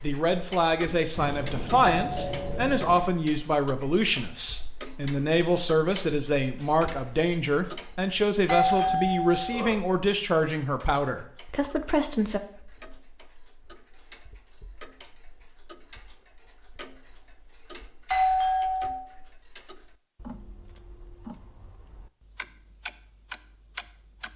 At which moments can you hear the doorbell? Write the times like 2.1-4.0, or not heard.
1.1-3.0, 8.4-9.7, 18.1-19.1.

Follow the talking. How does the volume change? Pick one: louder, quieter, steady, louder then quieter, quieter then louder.
steady.